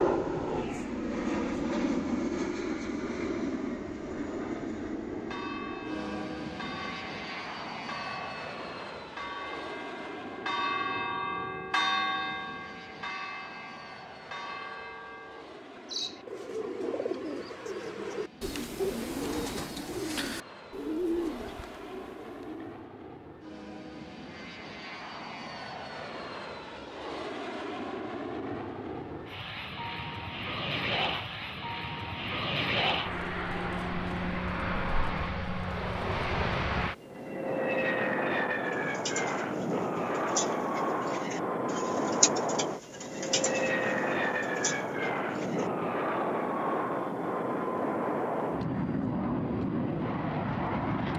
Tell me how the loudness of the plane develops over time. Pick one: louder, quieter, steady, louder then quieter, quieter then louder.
quieter then louder.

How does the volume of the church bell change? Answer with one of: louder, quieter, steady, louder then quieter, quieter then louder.
louder then quieter.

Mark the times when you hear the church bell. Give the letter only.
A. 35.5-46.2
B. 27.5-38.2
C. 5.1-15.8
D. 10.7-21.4
C.